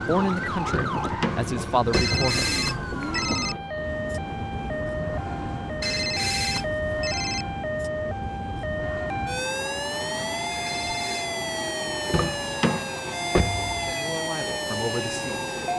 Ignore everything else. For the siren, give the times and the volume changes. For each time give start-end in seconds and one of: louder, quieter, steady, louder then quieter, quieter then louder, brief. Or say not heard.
0.0-15.7 steady.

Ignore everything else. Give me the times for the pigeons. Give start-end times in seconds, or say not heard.
not heard.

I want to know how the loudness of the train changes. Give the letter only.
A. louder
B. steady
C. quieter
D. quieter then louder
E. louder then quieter
B.